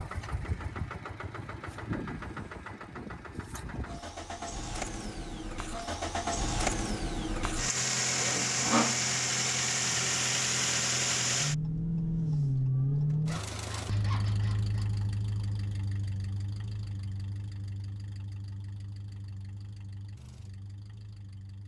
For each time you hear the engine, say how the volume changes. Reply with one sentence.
The engine can be heard from 0.0 to 21.6 s, getting louder then quieter.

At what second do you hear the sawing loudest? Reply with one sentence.
The loudest moment of the sawing is at 9 seconds.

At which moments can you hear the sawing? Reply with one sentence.
You can hear the sawing from 8.1 to 9.0 s and from 13.2 to 14.9 s.